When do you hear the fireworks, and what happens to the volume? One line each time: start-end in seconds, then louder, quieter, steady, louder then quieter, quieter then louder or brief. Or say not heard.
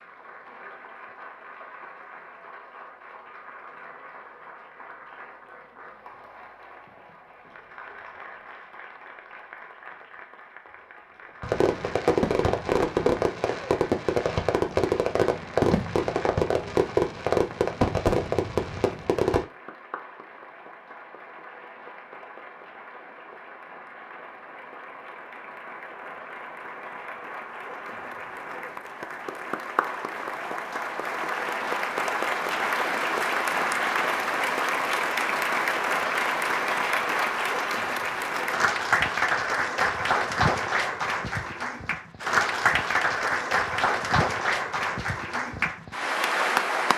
11.4-19.4 steady.